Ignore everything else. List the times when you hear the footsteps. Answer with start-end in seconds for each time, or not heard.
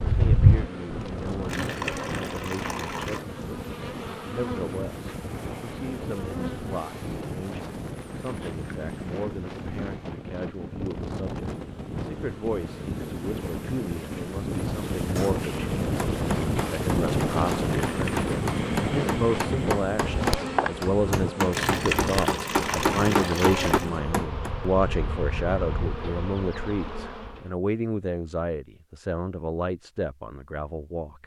not heard.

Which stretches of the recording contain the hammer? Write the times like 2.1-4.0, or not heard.
15.2-24.5.